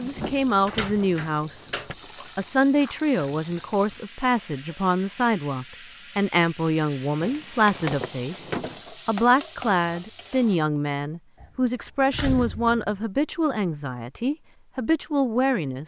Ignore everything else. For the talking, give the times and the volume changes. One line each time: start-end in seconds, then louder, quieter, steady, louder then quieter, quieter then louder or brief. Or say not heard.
0.0-1.7 brief
2.4-15.8 steady.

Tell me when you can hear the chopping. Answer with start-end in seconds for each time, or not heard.
not heard.